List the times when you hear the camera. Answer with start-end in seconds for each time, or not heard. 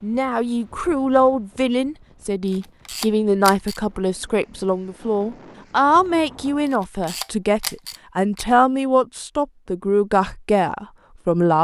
2.5-3.8, 6.7-8.4.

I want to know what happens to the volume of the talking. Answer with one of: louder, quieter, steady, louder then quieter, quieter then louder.
steady.